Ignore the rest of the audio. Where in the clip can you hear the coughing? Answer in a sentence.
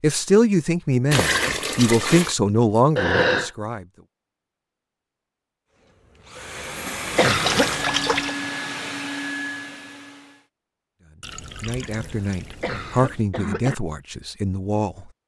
You can hear the coughing from 3.0 to 3.5 s, from 6.3 to 7.7 s and from 12.1 to 13.8 s.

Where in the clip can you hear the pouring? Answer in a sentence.
You can hear the pouring from 1.1 to 2.4 s, from 7.2 to 8.3 s and from 11.2 to 13.2 s.